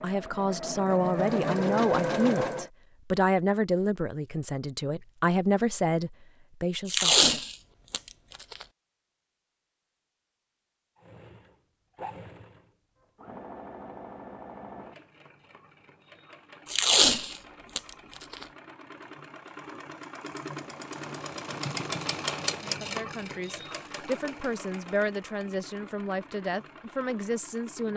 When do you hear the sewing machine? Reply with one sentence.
You can hear the sewing machine from 0.0 to 2.7 s and from 10.9 to 27.9 s.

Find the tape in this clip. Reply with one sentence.
The tape can be heard from 6.8 to 8.7 s and from 16.6 to 18.4 s.